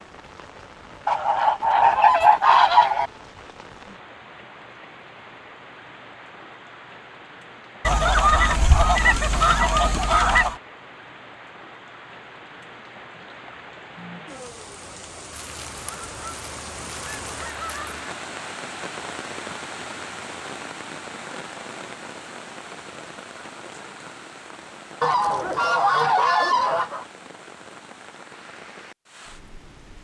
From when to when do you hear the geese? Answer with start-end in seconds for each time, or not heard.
1.1-3.1, 7.8-10.6, 15.3-18.1, 25.0-27.1.